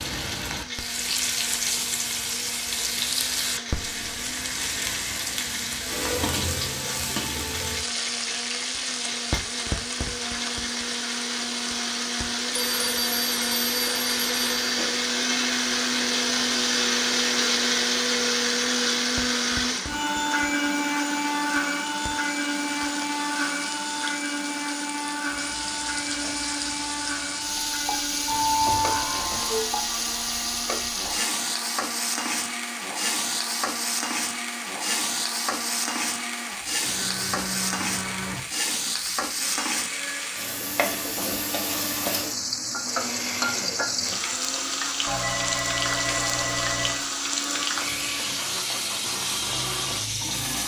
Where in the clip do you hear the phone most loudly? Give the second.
29 s.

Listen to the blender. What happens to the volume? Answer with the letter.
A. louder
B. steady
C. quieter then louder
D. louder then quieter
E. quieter
D.